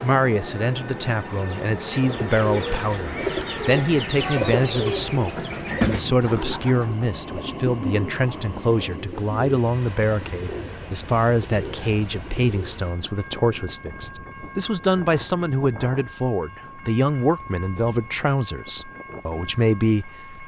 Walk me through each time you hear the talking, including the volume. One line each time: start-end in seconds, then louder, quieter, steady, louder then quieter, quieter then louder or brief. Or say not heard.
0.0-20.4 steady.